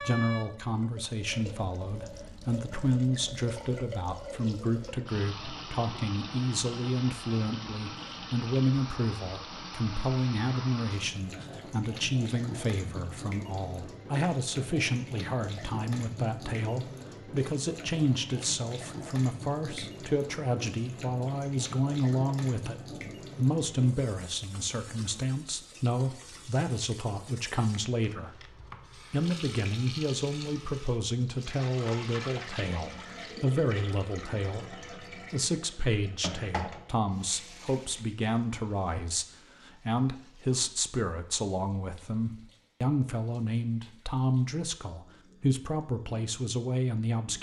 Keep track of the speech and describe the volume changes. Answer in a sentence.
The loudness of the speech stays about the same.